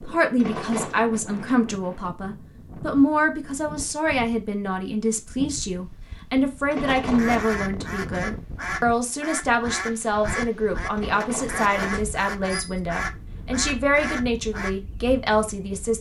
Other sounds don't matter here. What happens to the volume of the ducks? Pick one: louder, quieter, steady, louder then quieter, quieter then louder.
steady.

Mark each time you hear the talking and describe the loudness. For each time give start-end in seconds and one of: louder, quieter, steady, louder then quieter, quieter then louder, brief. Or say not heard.
0.0-15.9 steady.